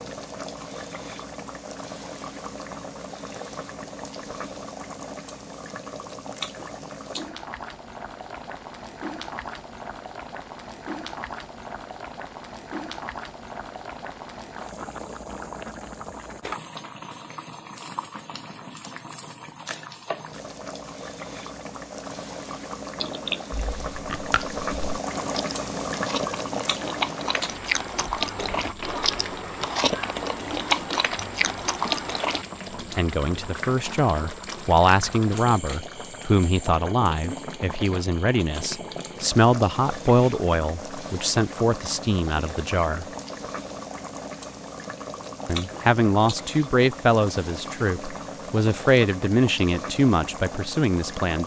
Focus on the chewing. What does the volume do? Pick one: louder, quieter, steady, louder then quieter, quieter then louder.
louder.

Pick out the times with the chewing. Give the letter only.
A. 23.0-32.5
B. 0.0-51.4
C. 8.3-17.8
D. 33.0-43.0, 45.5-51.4
A.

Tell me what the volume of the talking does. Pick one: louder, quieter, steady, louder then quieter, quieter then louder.
steady.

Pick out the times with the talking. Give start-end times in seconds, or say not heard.
33.0-43.0, 45.5-51.4.